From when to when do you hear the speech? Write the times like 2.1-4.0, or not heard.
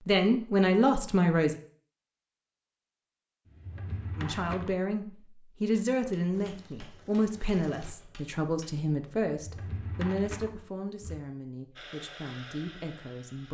0.1-1.6, 4.2-13.5.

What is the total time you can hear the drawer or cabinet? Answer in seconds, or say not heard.
3 s.